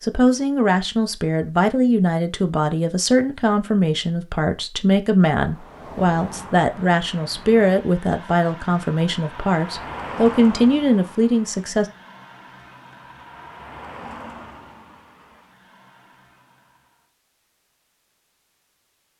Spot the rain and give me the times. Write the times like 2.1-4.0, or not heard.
not heard.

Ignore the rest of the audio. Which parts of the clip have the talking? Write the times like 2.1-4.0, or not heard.
0.0-11.8.